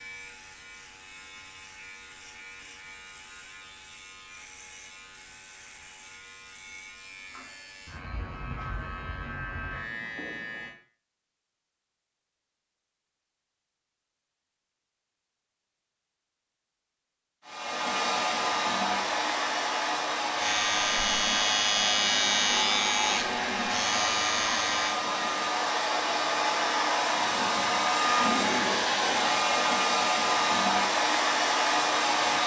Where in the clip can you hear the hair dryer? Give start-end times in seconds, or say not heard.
17.4-32.4.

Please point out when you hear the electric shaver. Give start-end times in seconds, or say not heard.
0.0-10.8, 20.4-25.0.